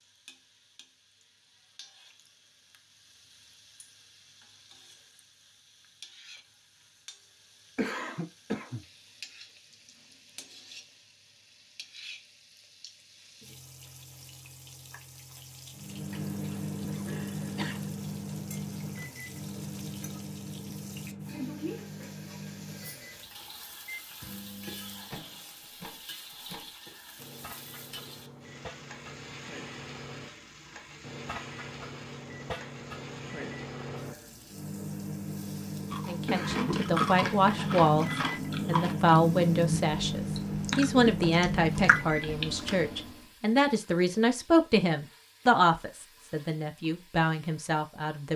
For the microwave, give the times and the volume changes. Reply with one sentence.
You can hear the microwave from 15.8 to 43.2 s, getting quieter then louder.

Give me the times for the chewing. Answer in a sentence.
The chewing can be heard from 35.9 to 42.6 s.